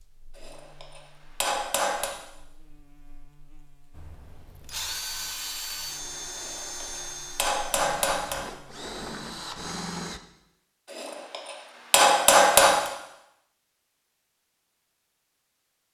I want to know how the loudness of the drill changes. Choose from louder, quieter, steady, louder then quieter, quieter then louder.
quieter then louder.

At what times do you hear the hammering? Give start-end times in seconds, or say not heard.
0.3-2.1, 6.3-8.4, 10.9-12.9.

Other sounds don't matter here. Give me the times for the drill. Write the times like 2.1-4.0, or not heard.
3.9-10.2.